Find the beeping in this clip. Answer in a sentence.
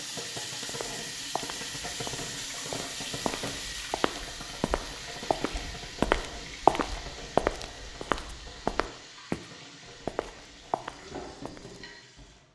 You can't hear the beeping here.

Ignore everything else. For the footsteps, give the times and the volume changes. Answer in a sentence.
The footsteps can be heard from 0.7 to 9.4 s, getting louder then quieter; and briefly from 10.1 to 11.8 s.